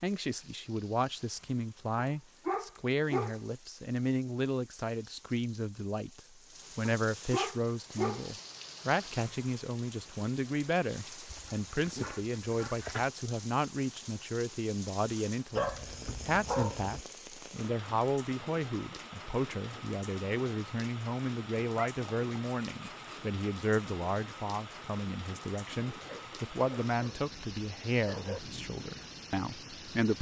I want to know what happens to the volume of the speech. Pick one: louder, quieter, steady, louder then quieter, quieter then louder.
steady.